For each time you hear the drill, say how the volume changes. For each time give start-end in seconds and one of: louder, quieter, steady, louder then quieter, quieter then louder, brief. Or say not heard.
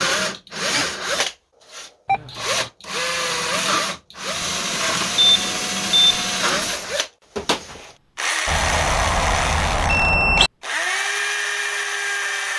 0.0-12.5 steady.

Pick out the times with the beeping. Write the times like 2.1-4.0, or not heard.
2.0-2.7, 5.2-6.2, 8.4-10.5.